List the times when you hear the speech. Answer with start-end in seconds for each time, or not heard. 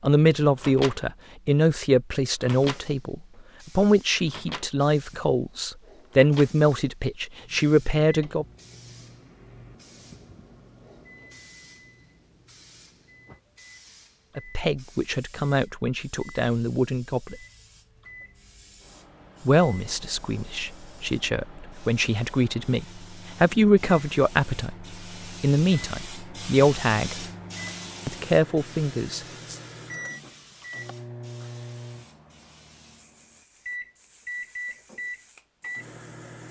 0.0-8.4, 14.3-17.4, 19.4-27.2, 28.1-29.6.